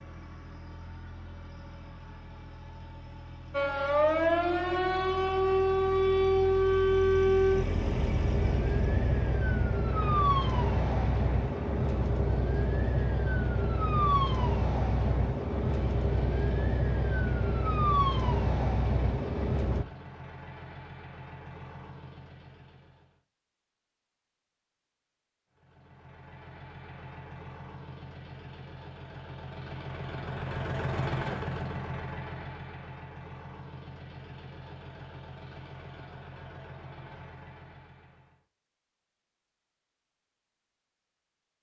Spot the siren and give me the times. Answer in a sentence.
The siren can be heard from 3.5 to 19.9 s.